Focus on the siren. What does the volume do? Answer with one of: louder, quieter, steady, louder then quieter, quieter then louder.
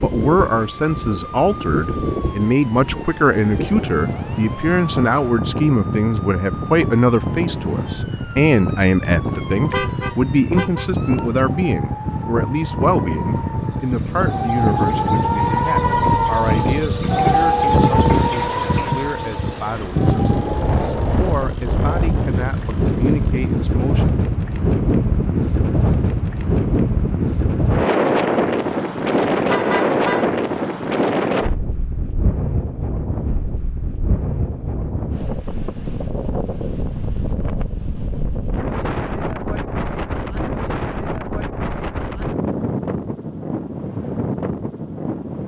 louder.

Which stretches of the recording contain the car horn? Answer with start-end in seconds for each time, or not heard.
9.2-10.9, 29.4-30.4.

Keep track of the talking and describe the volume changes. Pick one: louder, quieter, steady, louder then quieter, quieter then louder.
quieter.